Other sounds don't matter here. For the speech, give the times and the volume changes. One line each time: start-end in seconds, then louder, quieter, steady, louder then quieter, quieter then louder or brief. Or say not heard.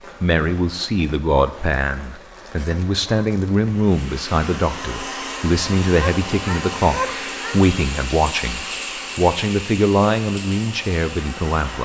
0.2-11.8 steady.